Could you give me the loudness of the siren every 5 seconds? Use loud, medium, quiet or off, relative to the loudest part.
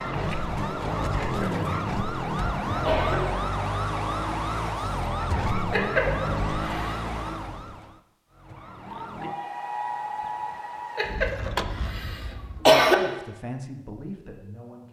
loud, loud, medium.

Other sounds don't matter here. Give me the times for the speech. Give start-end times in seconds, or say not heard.
12.9-14.8.